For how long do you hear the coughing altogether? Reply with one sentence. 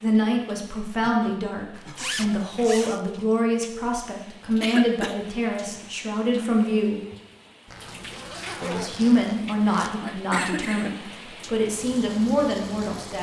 The coughing can be heard for 3 seconds in total.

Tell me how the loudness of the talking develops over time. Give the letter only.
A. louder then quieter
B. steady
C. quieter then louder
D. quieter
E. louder
B.